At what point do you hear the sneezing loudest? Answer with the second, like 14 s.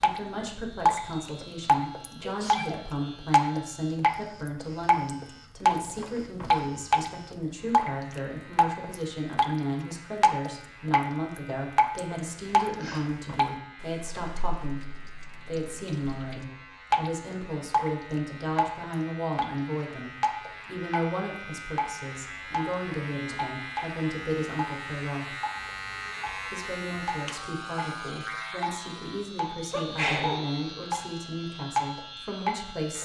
30 s.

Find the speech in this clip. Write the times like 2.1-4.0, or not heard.
0.0-25.4, 26.4-33.0.